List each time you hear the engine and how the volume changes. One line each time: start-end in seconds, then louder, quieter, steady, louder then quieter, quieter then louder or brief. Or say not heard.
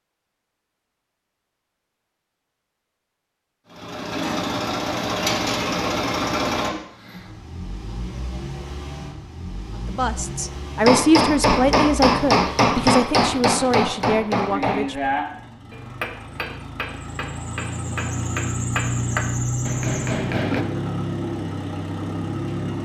3.6-22.7 quieter then louder.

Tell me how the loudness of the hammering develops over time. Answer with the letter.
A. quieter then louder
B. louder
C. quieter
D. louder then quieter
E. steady
A.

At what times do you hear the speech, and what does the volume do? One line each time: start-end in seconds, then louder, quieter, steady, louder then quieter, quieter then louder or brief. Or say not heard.
9.8-15.2 quieter.